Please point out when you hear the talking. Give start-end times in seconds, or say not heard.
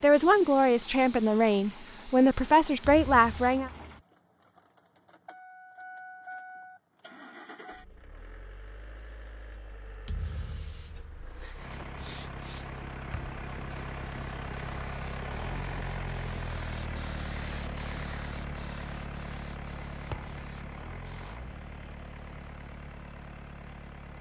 0.0-3.7.